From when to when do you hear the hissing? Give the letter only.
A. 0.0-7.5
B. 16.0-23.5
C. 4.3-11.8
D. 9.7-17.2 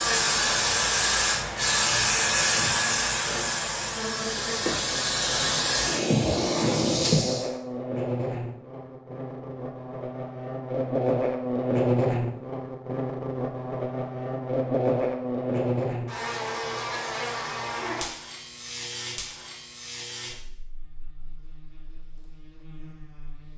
A.